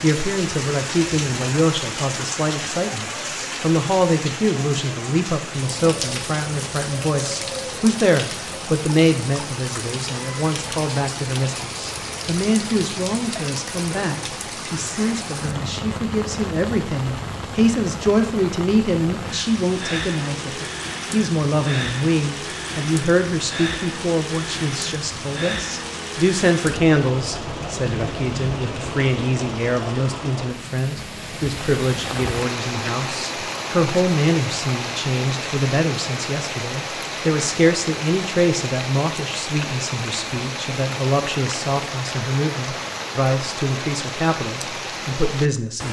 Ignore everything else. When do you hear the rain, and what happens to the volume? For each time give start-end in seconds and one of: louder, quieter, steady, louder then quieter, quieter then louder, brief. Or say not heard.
0.0-45.8 steady.